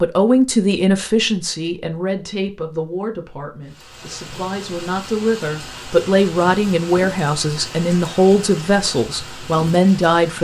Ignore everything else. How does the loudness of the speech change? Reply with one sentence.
The volume of the speech goes down, then up.